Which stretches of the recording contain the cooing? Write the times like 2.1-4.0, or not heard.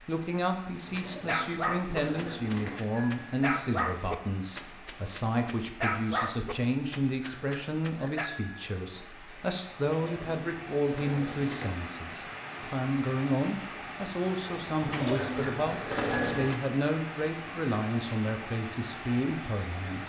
0.8-2.8, 9.8-11.7, 14.8-16.6.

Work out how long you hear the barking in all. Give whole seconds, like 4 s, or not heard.
7 s.